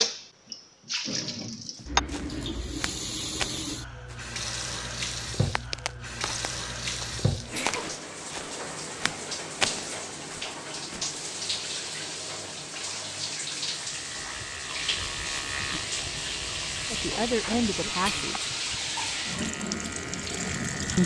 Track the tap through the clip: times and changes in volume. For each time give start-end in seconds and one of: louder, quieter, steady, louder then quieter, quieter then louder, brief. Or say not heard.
0.0-21.0 steady.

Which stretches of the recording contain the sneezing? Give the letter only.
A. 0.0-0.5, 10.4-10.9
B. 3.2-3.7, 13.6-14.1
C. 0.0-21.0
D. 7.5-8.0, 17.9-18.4
D.